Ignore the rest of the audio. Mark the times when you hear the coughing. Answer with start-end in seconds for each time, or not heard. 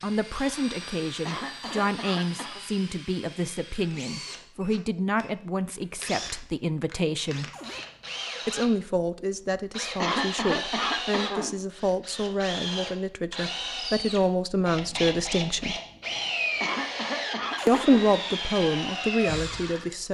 1.2-2.6, 10.0-11.6, 16.6-18.1.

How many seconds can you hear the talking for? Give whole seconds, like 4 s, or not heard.
17 s.